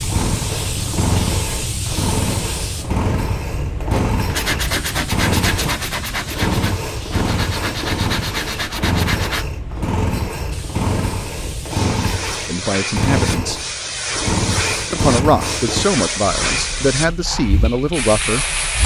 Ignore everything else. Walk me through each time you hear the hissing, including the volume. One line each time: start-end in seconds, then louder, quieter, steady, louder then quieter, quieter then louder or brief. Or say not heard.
0.0-18.8 quieter then louder.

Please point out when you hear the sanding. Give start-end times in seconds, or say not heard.
3.9-9.4.